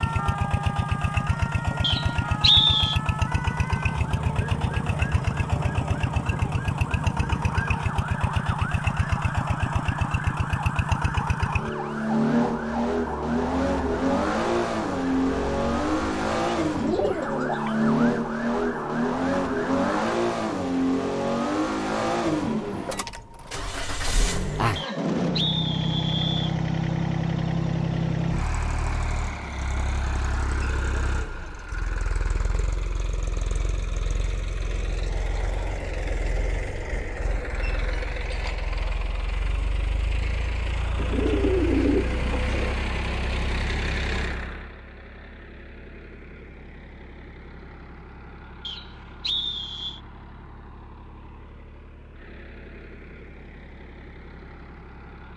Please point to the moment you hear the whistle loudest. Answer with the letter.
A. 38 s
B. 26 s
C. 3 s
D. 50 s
C.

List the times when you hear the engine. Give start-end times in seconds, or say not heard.
0.0-55.3.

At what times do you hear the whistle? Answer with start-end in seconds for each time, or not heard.
1.8-3.0, 24.8-26.6, 48.6-50.0.